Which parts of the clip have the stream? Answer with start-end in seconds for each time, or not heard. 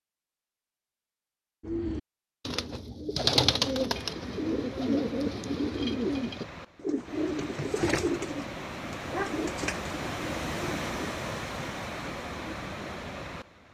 3.9-13.6.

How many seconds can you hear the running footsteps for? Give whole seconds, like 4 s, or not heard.
not heard.